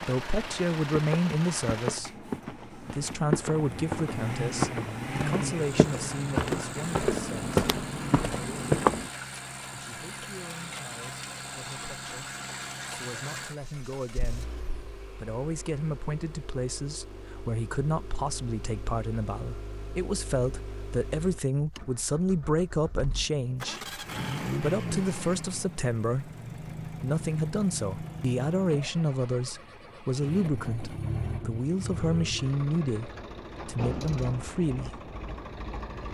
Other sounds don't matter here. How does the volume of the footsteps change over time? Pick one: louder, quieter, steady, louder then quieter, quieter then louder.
louder.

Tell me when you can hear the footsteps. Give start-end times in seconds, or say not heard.
0.0-9.1.